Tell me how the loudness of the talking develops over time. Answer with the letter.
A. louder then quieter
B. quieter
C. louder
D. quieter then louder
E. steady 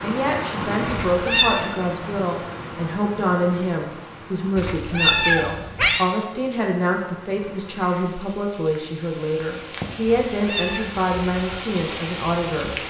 E.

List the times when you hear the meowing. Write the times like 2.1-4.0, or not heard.
0.8-1.6, 4.5-6.0, 10.1-10.8.